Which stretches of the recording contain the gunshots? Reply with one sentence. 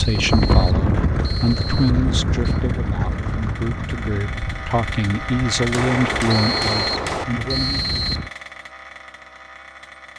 You can hear the gunshots from 5.7 to 7.2 s.